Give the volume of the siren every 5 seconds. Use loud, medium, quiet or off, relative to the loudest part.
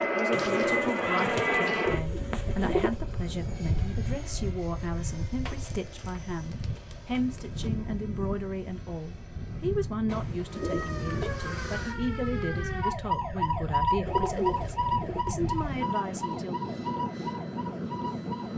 off, off, loud, medium.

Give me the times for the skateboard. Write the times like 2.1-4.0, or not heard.
not heard.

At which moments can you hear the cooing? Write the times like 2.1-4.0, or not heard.
0.3-3.0, 5.5-7.7, 10.1-11.9, 14.1-15.2.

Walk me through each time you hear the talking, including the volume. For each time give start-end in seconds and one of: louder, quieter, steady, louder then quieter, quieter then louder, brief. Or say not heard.
0.0-16.6 steady.